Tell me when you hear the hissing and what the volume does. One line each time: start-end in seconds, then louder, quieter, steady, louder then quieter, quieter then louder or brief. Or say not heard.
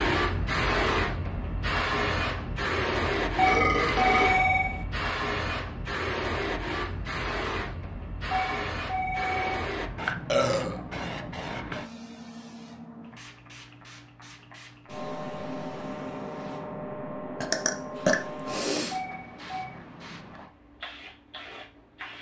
0.0-22.1 quieter.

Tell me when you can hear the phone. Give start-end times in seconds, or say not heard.
3.4-4.8, 8.3-9.7, 18.9-19.8.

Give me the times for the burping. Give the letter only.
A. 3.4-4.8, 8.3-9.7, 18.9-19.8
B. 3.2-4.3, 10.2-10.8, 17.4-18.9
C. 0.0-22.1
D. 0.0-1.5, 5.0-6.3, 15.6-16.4
B.